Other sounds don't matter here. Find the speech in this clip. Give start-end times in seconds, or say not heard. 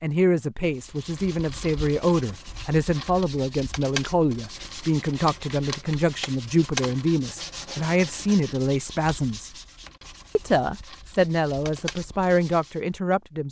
0.0-9.5, 10.3-13.4.